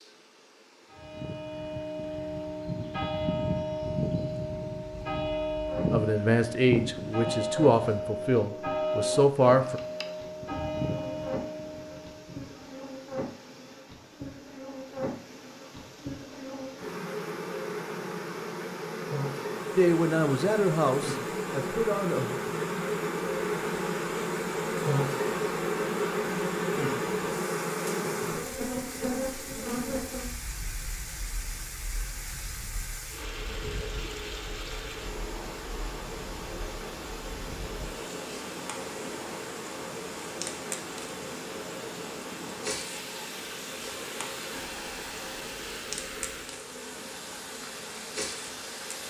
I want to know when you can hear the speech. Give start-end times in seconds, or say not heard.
5.9-9.8, 19.8-22.4.